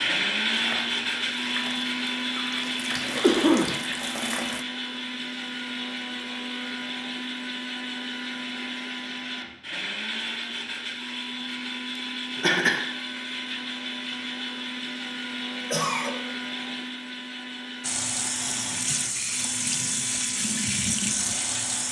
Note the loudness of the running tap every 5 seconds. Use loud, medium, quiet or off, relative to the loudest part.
medium, off, off, loud, loud.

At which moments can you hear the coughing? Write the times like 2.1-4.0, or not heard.
3.2-3.8, 12.3-12.9, 15.6-16.1.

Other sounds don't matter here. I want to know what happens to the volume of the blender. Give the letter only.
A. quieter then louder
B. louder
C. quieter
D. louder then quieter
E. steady
C.